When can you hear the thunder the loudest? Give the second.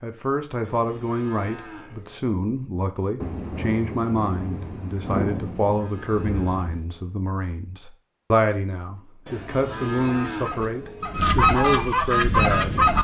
5 s.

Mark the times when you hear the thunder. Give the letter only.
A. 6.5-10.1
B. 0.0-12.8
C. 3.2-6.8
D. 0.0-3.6
C.